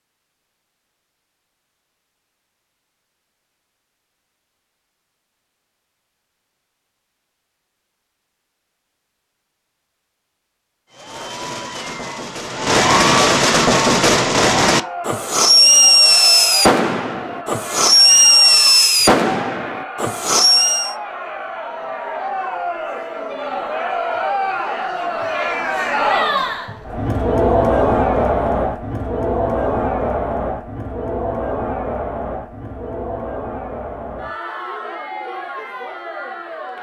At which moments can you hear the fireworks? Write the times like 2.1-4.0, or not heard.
10.9-20.9.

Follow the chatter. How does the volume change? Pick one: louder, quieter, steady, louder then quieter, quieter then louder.
louder then quieter.